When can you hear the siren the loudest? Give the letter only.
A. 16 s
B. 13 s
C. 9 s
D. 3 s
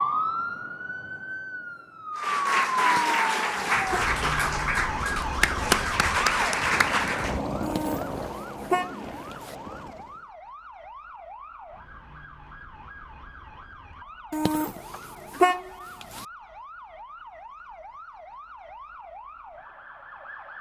D.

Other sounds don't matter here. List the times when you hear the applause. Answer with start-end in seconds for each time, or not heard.
2.1-7.4.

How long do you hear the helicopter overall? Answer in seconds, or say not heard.
7 s.